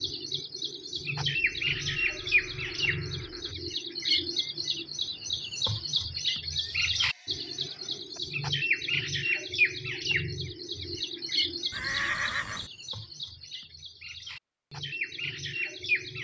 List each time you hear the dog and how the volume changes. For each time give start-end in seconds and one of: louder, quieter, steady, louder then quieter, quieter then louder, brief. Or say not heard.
not heard.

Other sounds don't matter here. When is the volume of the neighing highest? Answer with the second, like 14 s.
12 s.